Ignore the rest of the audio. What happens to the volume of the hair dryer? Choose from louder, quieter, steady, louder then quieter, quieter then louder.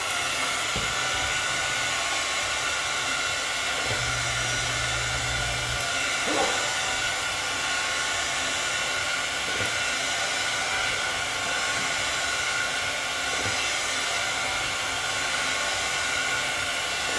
steady.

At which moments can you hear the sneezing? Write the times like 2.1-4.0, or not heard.
0.8-2.2, 6.2-6.7, 11.4-11.9.